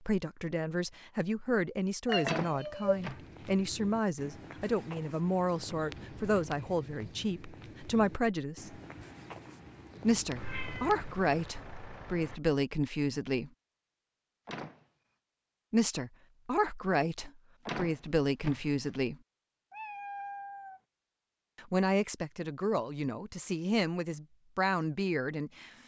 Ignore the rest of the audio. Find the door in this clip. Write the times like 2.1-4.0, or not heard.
2.2-3.5, 14.4-14.8, 17.6-18.6.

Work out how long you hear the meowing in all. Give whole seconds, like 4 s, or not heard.
4 s.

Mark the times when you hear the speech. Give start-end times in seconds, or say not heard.
0.0-8.8, 10.0-13.5, 15.7-19.1, 21.6-25.7.